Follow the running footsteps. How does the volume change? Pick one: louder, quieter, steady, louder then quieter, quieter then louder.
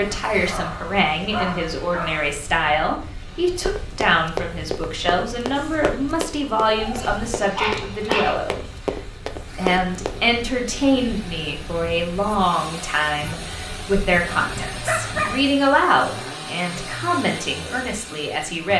quieter then louder.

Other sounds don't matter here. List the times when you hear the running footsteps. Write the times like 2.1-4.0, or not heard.
3.5-10.2.